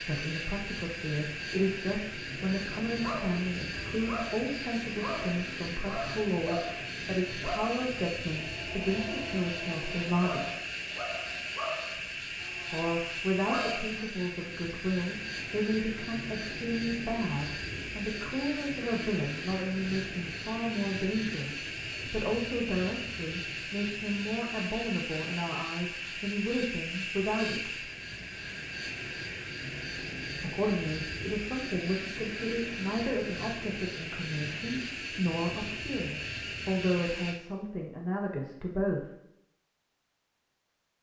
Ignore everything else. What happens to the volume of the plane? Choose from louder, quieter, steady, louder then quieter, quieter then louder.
steady.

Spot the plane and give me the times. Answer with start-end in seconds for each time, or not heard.
0.0-37.4.